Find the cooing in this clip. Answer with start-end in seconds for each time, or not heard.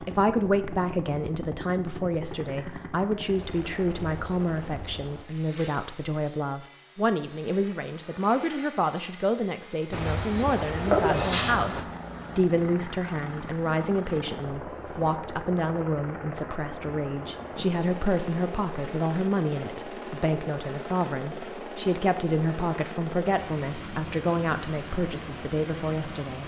9.9-11.8.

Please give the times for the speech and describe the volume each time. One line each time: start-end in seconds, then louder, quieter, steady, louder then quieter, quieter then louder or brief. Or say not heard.
0.0-26.4 steady.